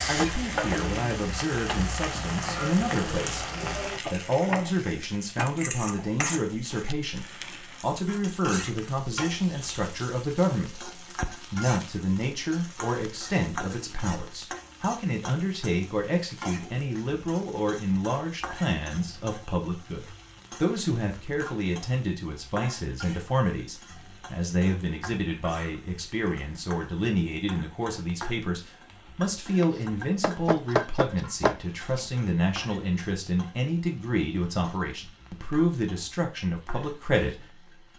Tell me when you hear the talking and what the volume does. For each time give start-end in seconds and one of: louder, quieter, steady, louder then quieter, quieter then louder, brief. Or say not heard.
0.1-37.9 steady.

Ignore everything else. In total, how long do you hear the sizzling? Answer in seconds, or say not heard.
38 s.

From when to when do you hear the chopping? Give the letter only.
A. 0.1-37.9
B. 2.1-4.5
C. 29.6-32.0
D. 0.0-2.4
C.